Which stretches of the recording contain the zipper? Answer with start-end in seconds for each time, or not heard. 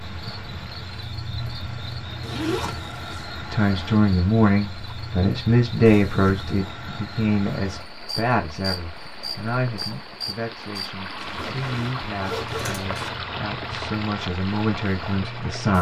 2.2-3.3, 5.8-6.5, 11.2-13.1.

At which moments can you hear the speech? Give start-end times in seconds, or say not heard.
3.5-15.7.